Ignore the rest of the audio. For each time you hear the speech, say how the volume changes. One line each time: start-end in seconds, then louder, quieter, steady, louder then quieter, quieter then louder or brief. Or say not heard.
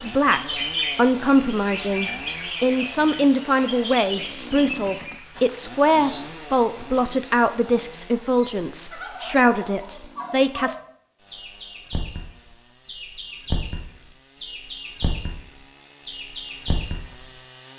0.0-10.8 steady.